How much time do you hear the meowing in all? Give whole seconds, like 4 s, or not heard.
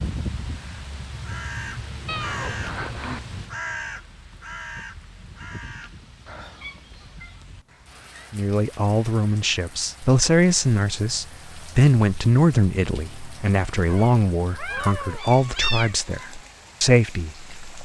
5 s.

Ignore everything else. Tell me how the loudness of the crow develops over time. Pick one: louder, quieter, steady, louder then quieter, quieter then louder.
quieter.